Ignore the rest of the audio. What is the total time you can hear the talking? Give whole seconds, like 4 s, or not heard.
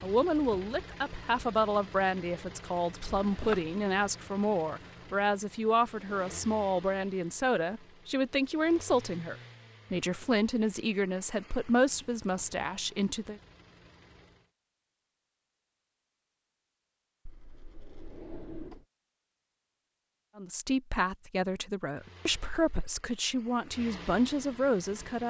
18 s.